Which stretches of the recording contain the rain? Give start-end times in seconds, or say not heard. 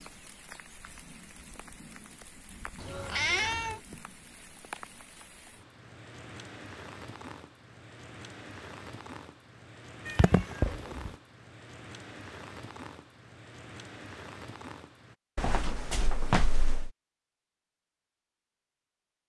0.0-15.2.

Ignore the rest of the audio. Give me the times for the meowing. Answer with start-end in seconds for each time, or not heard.
2.8-3.8, 10.1-11.1, 15.3-16.9.